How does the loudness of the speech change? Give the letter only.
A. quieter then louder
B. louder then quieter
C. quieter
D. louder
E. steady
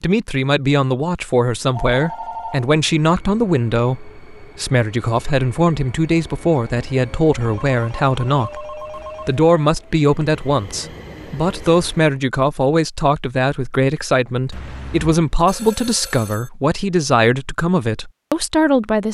E.